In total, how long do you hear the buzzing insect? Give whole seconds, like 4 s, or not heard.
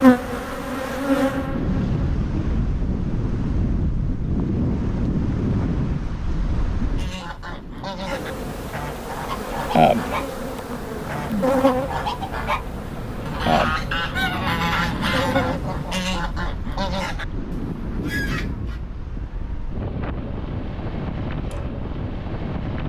10 s.